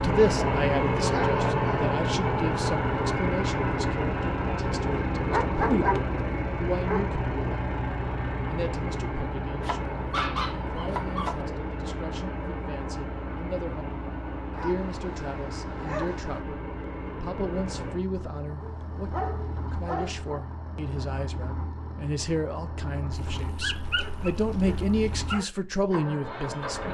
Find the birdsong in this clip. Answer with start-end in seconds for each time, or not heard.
not heard.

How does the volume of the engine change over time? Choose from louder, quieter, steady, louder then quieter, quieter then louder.
quieter.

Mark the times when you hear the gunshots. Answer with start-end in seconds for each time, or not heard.
not heard.